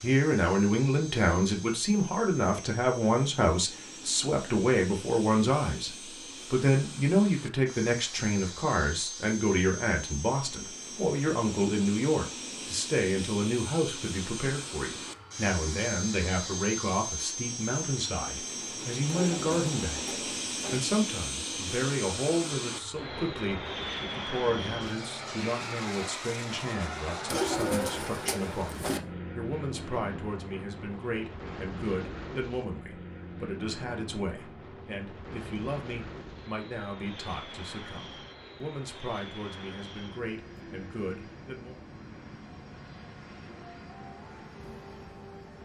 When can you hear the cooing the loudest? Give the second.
28 s.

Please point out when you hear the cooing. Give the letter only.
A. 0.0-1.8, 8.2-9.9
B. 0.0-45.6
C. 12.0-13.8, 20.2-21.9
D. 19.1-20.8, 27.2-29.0
D.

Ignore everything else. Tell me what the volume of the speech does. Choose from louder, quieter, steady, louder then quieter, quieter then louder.
quieter.